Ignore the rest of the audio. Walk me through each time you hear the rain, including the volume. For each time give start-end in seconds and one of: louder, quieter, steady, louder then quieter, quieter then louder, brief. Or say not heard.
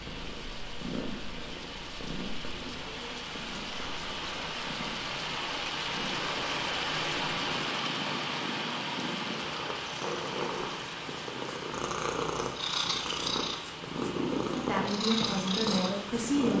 0.0-16.5 louder then quieter.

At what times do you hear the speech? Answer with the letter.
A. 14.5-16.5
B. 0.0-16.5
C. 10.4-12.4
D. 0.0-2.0
A.